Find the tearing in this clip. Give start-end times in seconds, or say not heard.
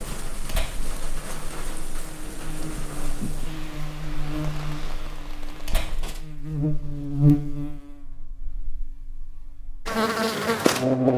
0.5-0.9, 5.7-7.2.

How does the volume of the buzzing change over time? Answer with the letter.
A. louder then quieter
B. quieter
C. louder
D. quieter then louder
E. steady
C.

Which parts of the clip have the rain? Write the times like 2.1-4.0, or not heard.
0.0-6.2.